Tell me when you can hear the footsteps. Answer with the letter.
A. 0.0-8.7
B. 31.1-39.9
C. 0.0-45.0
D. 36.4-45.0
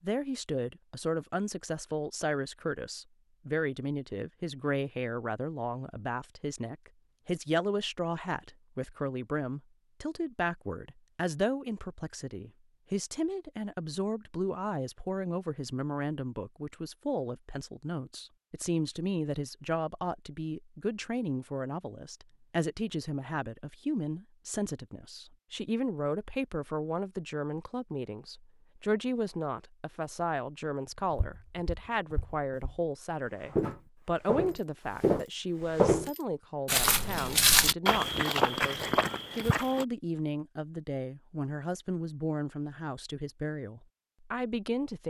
B.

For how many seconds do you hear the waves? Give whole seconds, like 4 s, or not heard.
not heard.